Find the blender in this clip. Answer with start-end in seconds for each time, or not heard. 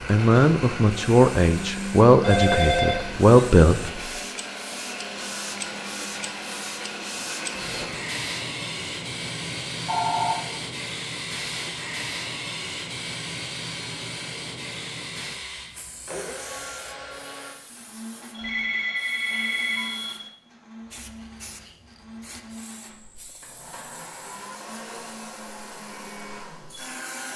0.0-27.3.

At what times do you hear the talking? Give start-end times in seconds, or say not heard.
0.1-4.0.